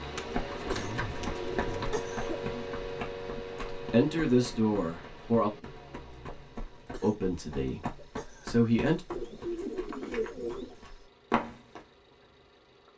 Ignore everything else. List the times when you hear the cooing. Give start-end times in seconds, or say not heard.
0.1-1.9, 9.1-10.8.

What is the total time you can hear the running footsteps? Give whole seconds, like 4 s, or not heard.
12 s.